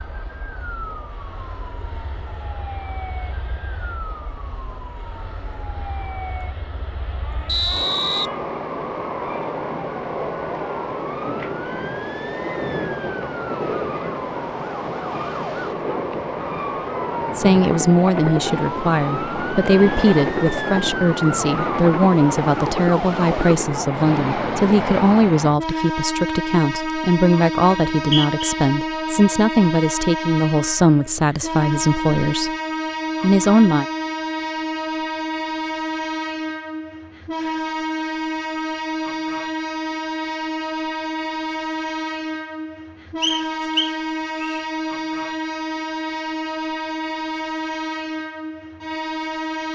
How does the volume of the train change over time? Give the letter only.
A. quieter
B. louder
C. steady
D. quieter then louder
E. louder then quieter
B.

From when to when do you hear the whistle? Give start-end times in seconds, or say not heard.
7.5-8.3, 27.7-28.6, 43.2-44.6.